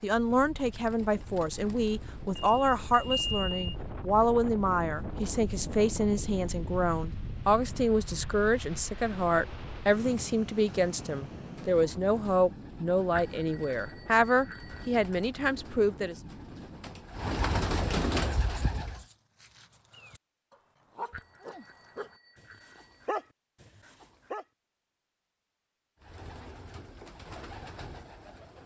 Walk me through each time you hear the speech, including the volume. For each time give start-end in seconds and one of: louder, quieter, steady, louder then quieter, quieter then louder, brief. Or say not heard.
0.0-16.1 steady.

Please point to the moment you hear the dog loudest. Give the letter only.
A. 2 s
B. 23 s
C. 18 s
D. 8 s
B.